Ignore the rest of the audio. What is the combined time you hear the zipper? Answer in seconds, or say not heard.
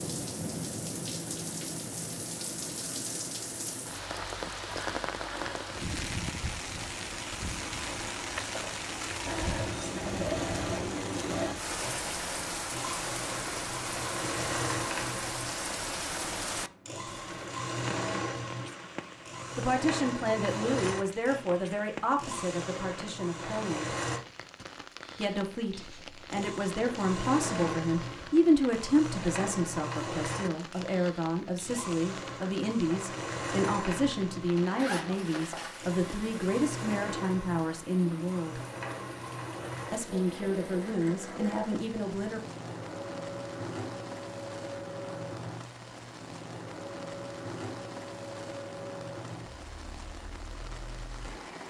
2 s.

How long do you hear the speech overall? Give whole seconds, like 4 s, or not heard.
20 s.